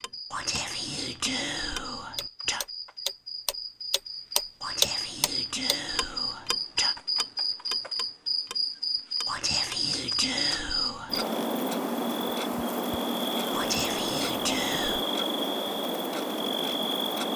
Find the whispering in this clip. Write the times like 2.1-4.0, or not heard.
0.3-2.6, 4.6-7.0, 9.2-11.2, 13.5-15.1.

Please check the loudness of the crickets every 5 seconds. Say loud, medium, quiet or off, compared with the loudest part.
medium, loud, loud, loud.